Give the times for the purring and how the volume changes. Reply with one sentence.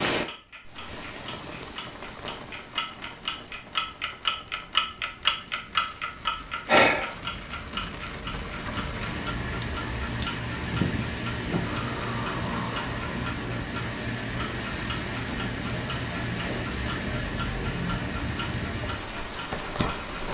The purring can't be heard in this clip.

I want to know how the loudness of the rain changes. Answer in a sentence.
The volume of the rain goes up.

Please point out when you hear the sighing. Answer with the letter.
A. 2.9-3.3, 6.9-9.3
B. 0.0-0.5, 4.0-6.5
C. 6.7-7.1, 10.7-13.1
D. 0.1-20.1
C.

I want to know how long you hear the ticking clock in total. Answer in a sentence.
You can hear the ticking clock for 20 seconds altogether.